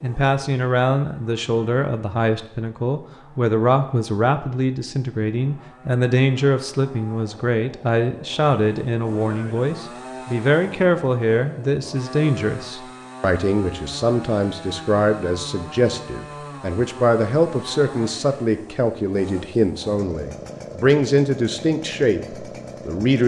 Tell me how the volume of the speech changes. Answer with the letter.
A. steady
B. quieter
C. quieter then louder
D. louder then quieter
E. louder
A.